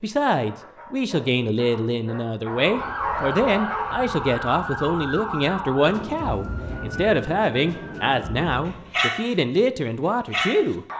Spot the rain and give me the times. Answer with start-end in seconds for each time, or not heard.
not heard.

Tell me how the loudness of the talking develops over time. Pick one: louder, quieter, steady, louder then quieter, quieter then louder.
steady.